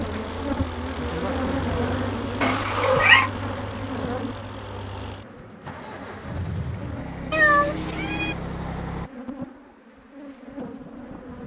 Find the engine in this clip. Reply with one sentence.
The engine can be heard from 0.0 to 9.1 s.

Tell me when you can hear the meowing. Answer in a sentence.
You can hear the meowing from 2.4 to 3.3 s and from 7.3 to 8.3 s.